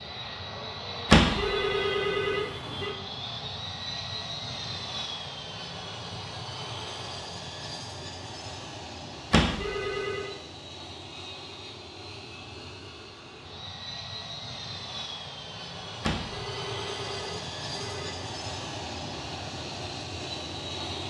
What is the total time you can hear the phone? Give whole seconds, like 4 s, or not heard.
5 s.